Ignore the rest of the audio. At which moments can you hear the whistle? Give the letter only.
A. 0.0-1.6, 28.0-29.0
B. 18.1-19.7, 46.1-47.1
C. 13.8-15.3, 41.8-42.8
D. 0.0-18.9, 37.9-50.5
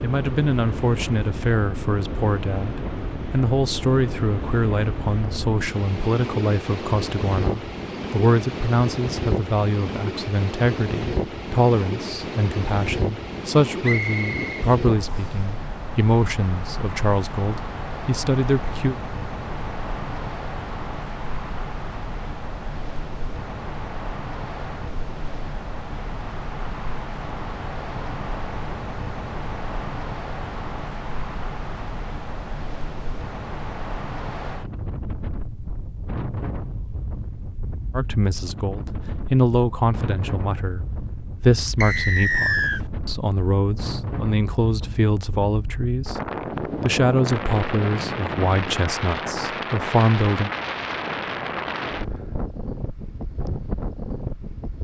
C.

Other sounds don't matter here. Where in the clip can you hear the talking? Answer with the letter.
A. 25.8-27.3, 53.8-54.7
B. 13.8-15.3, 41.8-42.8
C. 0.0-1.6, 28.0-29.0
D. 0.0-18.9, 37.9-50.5
D.